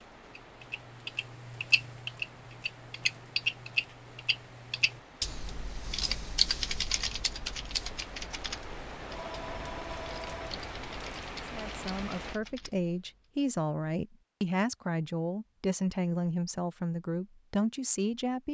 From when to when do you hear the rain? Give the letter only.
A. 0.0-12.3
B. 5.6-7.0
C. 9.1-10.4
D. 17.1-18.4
A.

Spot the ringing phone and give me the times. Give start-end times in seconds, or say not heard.
9.1-10.4.